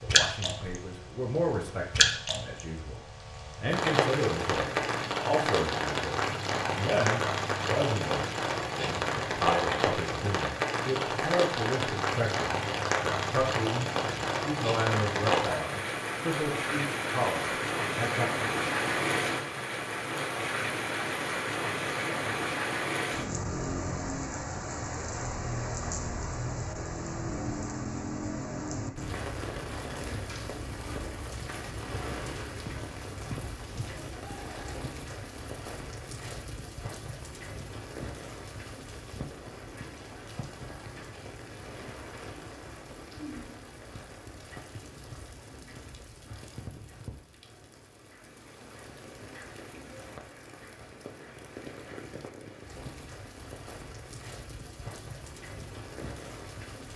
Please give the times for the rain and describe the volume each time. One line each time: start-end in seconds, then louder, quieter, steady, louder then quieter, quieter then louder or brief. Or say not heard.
0.0-56.9 quieter.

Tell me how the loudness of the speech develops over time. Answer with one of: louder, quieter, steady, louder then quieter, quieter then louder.
steady.